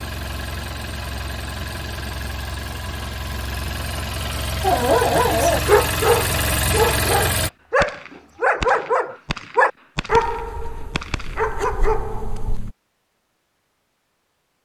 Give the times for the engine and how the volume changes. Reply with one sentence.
The engine can be heard from 0.0 to 7.5 s, getting louder.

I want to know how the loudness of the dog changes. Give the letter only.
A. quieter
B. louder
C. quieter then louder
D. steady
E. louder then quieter
A.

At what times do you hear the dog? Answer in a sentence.
The dog can be heard from 4.6 to 12.7 s.